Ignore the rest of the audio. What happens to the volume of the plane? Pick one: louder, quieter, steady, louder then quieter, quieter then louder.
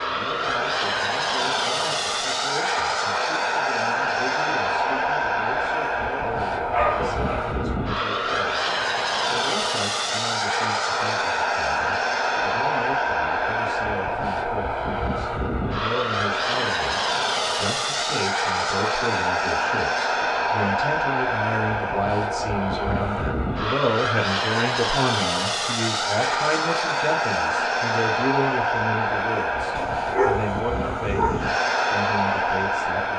steady.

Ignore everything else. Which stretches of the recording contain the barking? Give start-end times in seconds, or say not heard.
6.7-7.5, 29.8-31.5.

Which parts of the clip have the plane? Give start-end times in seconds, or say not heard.
0.0-33.1.